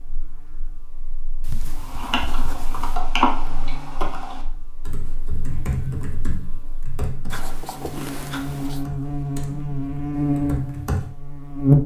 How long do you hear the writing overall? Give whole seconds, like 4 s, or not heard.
3 s.